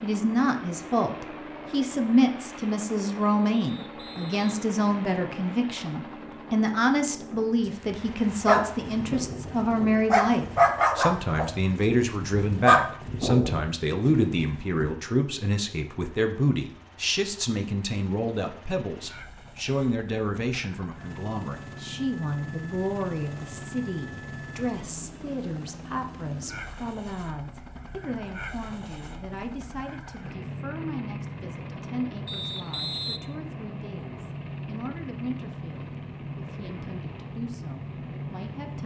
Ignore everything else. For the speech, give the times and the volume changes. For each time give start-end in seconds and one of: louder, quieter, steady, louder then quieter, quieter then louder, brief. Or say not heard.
0.0-38.8 quieter.